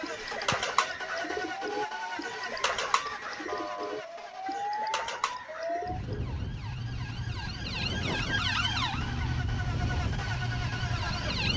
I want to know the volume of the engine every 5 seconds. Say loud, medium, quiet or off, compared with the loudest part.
loud, medium, loud.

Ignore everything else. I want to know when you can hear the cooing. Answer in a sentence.
The cooing can be heard from 0.0 to 6.2 s.